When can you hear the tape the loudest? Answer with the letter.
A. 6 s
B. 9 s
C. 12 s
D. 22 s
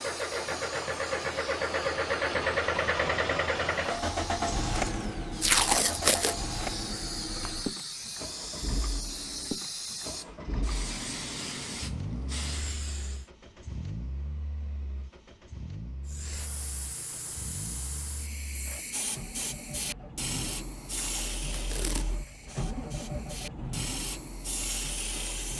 A.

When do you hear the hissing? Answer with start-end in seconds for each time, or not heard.
0.0-13.3, 16.1-25.5.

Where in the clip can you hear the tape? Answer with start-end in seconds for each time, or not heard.
5.4-6.3, 20.9-22.1.